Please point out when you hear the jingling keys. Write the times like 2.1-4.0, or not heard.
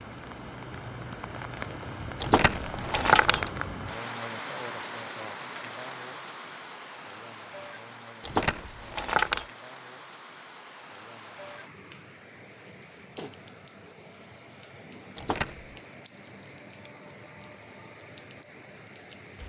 2.2-3.5, 8.2-9.4, 15.2-15.8.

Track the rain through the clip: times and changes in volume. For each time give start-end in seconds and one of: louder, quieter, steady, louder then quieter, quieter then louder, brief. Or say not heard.
0.0-19.4 quieter.